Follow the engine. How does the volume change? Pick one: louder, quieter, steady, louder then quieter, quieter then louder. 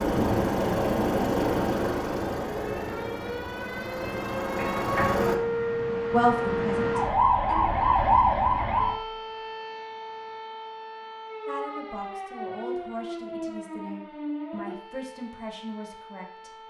quieter then louder.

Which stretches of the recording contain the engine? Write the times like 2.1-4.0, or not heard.
0.0-5.3.